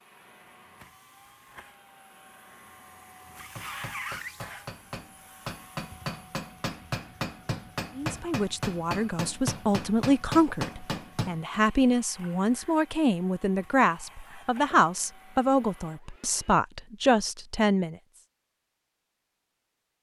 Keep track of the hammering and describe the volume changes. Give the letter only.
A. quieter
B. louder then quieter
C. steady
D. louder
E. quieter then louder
D.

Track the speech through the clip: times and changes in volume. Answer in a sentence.
You can hear the speech from 8.0 to 17.9 s, at a steady volume.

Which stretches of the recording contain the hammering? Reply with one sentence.
You can hear the hammering from 3.5 to 11.4 s.